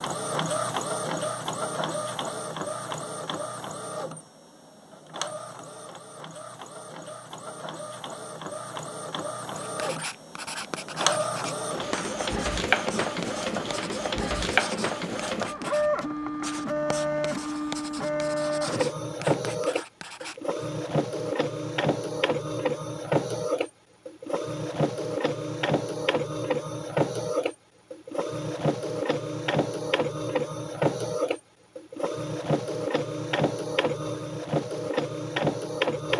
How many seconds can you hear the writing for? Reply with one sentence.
You can hear the writing for 11 seconds altogether.